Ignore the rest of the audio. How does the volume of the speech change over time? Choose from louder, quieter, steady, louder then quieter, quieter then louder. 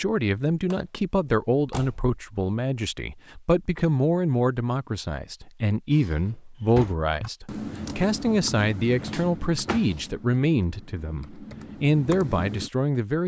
steady.